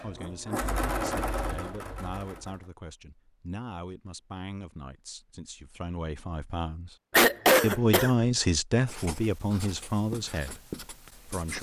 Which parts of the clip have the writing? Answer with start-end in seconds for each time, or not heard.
8.8-11.5.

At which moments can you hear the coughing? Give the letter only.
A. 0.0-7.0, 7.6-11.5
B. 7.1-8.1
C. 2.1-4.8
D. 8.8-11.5
B.